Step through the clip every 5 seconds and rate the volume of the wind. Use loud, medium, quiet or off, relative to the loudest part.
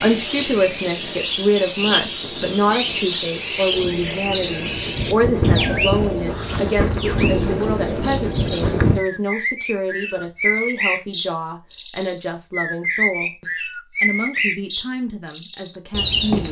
quiet, loud, off, off.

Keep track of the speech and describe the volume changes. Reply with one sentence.
The volume of the speech goes down.